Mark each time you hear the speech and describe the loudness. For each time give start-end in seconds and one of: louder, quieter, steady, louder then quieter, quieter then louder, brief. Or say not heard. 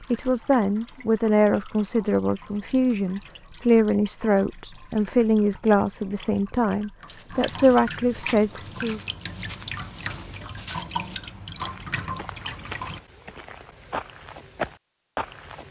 0.0-9.1 steady.